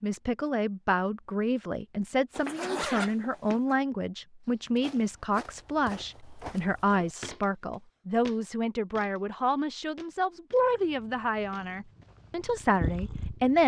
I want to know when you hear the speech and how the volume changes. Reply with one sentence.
The speech can be heard from 0.0 to 13.6 s, at a steady volume.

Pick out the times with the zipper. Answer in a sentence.
The zipper can be heard from 2.3 to 3.8 s.